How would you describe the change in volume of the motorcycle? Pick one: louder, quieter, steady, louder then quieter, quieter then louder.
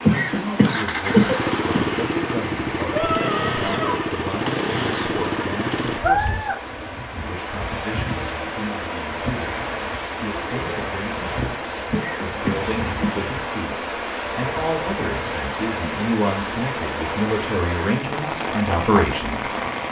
steady.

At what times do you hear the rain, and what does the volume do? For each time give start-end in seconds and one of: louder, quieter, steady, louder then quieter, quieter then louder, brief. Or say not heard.
0.0-19.8 steady.